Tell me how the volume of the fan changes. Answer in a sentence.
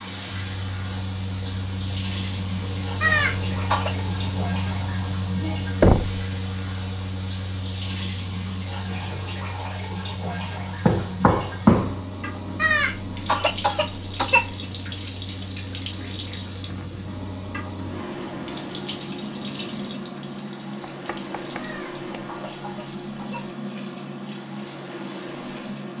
The loudness of the fan goes down, then up.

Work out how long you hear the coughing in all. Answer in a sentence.
You can hear the coughing for 5 seconds altogether.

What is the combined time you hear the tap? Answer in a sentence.
You can hear the tap for 26 seconds altogether.